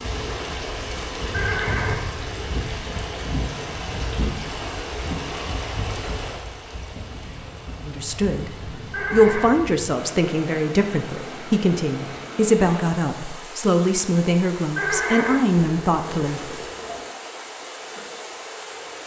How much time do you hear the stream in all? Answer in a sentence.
The stream can be heard for 19 seconds in total.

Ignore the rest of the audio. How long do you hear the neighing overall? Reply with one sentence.
The neighing can be heard for 4 seconds in total.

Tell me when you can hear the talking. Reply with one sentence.
The talking can be heard from 7.8 to 16.5 s.